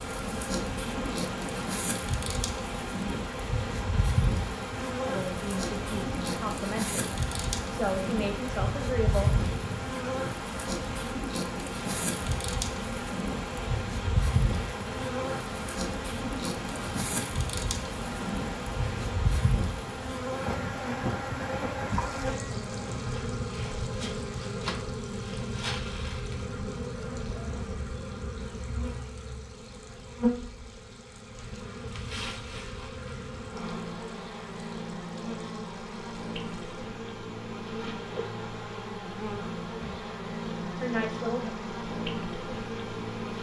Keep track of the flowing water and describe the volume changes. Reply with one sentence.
The loudness of the flowing water goes down.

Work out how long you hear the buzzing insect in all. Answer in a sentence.
The buzzing insect can be heard for 43 seconds in total.